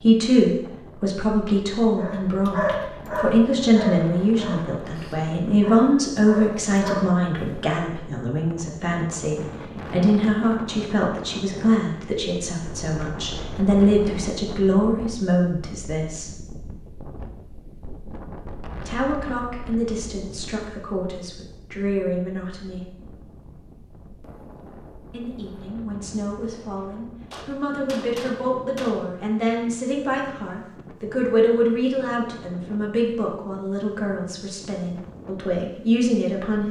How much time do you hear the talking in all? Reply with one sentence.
The talking can be heard for 32 seconds in total.